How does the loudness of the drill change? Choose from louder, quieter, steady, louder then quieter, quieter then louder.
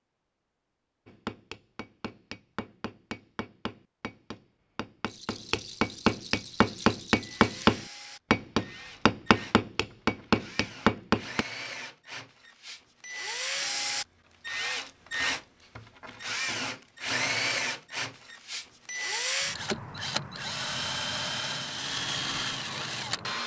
louder.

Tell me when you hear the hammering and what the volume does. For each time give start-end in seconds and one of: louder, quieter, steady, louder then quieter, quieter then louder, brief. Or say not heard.
1.1-11.4 louder.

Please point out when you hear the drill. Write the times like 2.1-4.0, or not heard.
6.6-23.4.